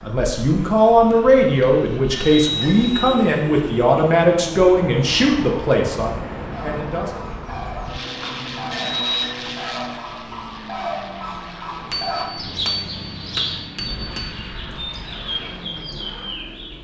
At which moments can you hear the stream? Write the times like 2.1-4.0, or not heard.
not heard.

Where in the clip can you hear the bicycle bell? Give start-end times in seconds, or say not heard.
1.4-3.1, 8.0-9.3, 11.9-14.3.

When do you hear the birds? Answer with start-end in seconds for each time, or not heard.
6.5-16.7.